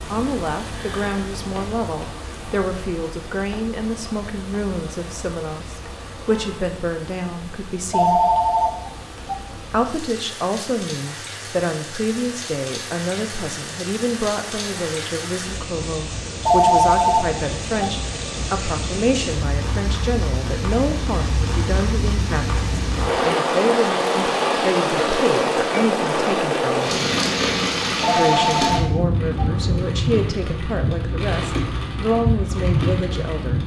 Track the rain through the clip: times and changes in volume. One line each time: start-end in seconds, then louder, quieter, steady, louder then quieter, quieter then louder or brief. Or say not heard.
0.0-33.6 louder.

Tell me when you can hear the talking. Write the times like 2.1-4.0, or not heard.
0.1-8.2, 9.7-27.1, 28.1-33.6.